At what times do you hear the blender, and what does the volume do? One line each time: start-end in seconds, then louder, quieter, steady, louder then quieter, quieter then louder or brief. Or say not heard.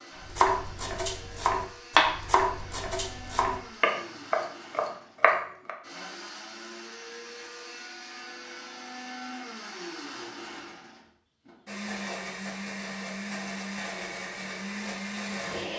0.0-15.7 louder.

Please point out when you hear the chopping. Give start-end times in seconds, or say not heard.
0.2-5.7.